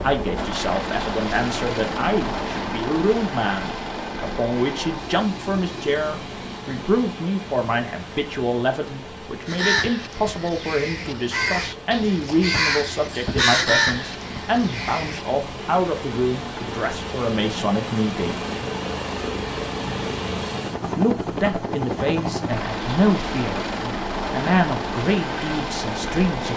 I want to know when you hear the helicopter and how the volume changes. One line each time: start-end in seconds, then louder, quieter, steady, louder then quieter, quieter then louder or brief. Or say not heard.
0.0-26.5 quieter then louder.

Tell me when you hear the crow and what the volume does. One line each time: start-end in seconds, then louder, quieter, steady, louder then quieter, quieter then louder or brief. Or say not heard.
9.4-15.3 louder then quieter.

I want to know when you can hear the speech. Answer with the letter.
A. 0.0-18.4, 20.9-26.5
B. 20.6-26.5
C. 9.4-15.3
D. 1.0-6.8
A.